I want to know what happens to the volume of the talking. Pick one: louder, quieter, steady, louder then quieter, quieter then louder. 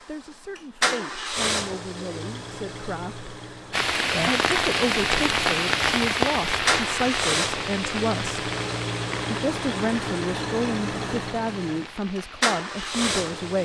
louder.